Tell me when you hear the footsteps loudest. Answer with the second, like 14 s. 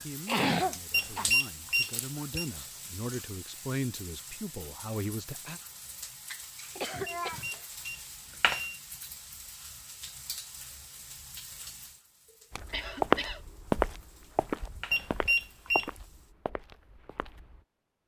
13 s.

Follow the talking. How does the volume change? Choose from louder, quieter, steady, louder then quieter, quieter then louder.
louder.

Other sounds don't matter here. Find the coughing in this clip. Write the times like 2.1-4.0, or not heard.
0.2-1.2, 6.8-7.7, 12.7-13.4.